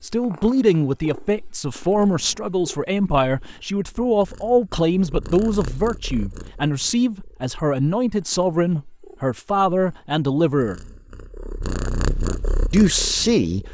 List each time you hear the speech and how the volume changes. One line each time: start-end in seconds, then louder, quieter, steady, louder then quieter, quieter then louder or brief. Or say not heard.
0.0-10.8 steady
12.7-13.6 brief.